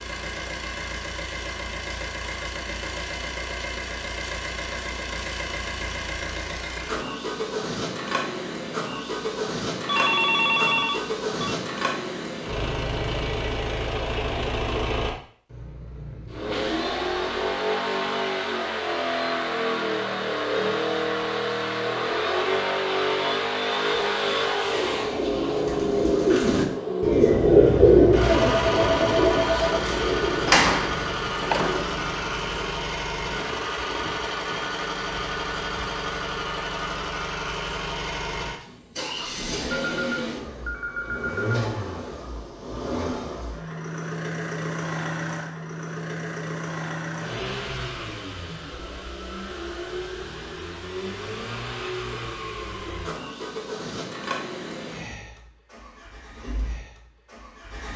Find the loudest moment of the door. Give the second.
31 s.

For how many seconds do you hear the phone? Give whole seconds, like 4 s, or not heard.
5 s.